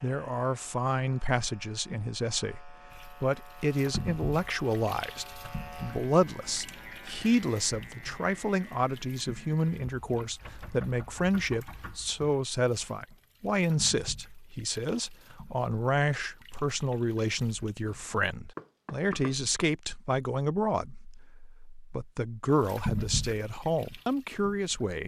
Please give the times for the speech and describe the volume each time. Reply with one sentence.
You can hear the speech from 0.0 to 25.0 s, at a steady volume.